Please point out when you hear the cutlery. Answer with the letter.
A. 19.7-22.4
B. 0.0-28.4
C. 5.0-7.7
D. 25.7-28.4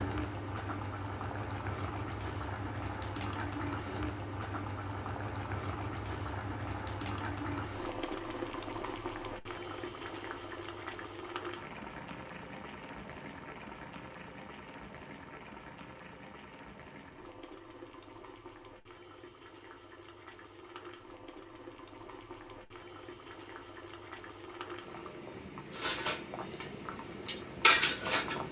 D.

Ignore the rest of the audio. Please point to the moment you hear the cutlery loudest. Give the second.
28 s.